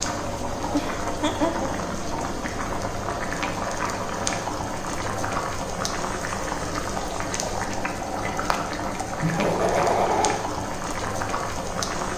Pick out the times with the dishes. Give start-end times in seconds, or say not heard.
not heard.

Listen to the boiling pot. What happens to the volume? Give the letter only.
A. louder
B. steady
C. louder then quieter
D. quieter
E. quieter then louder
B.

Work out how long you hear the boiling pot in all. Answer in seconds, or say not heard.
12 s.